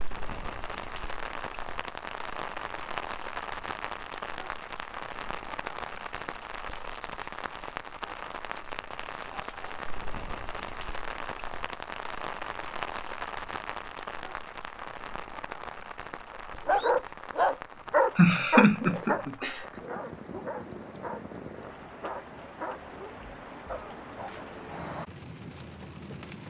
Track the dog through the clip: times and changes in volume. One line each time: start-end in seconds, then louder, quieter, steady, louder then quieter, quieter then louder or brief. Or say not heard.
16.6-24.4 quieter.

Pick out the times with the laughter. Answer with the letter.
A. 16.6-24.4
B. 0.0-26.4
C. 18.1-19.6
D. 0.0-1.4
C.